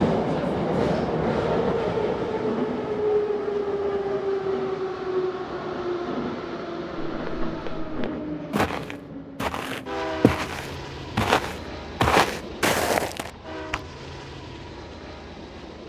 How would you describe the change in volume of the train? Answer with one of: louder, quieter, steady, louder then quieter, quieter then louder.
quieter.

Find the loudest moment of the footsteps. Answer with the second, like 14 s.
12 s.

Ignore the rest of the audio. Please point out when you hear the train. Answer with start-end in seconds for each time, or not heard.
0.0-15.8.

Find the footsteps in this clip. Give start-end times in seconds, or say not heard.
7.0-13.8.